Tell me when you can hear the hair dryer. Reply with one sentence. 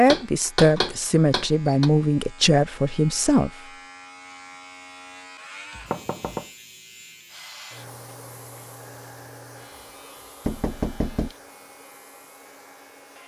The hair dryer can be heard from 7.2 to 13.2 s.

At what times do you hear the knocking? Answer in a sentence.
The knocking can be heard from 0.1 to 1.9 s, from 5.8 to 6.5 s and from 10.4 to 11.3 s.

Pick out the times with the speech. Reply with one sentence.
The speech can be heard from 0.0 to 3.5 s.